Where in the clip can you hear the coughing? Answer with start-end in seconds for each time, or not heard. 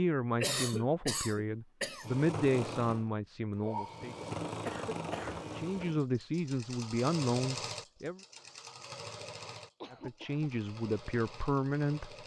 0.4-2.0, 4.2-5.7, 9.8-10.5.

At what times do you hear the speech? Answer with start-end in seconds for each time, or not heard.
0.0-4.2, 5.5-8.2, 9.9-12.2.